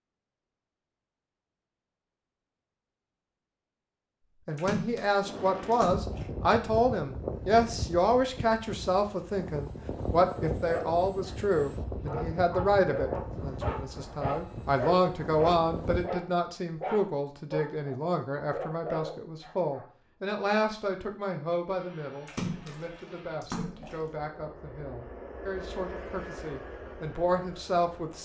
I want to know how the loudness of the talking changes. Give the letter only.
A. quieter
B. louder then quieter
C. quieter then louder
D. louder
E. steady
A.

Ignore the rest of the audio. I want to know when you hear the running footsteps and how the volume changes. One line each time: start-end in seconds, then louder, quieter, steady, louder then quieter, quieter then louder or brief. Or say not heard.
not heard.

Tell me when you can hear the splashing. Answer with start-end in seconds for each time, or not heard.
4.5-6.3, 22.2-24.1.